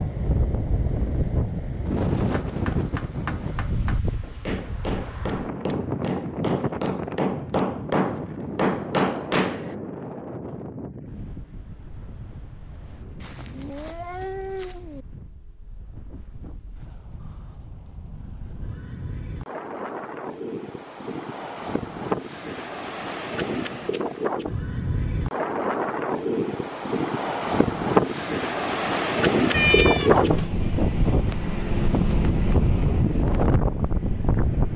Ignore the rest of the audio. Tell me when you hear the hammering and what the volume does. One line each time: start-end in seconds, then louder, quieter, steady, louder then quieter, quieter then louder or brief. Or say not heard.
2.3-9.8 louder.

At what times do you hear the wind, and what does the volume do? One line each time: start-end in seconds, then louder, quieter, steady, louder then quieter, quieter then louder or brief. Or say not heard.
0.0-34.7 quieter then louder.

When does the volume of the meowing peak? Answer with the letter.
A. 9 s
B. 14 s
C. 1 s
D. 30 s
D.